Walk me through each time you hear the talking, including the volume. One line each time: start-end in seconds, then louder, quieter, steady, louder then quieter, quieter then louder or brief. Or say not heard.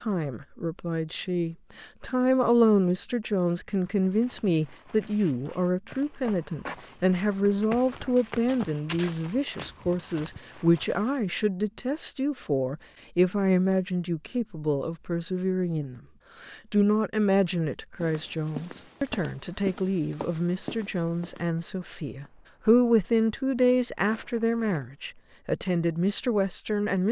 0.0-27.0 steady.